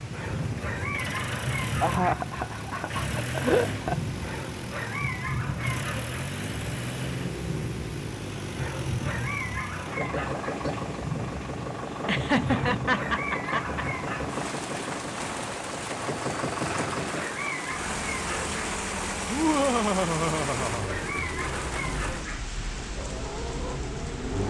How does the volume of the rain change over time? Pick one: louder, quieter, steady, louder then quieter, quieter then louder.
steady.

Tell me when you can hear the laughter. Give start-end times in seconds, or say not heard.
1.8-4.0, 12.1-13.8, 19.3-20.9.